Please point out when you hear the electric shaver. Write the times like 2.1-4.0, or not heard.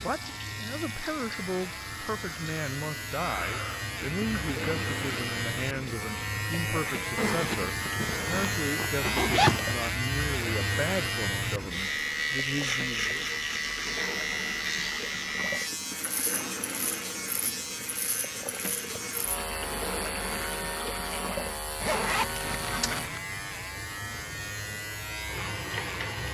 0.0-26.2.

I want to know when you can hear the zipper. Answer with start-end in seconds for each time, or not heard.
7.2-9.8, 21.8-23.2.